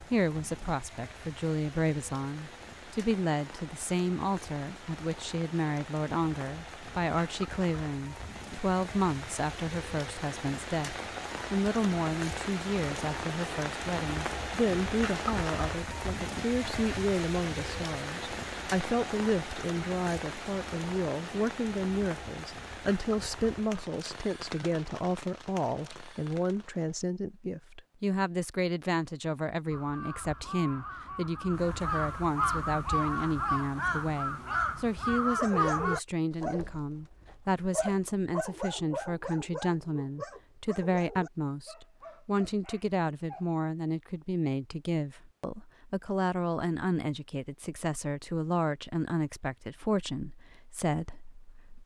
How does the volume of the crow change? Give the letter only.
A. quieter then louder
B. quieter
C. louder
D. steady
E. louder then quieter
C.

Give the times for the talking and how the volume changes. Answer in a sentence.
You can hear the talking from 0.0 to 51.8 s, at a steady volume.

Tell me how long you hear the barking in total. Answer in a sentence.
The barking can be heard for 8 seconds in total.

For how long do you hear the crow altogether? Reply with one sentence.
The crow can be heard for 6 seconds in total.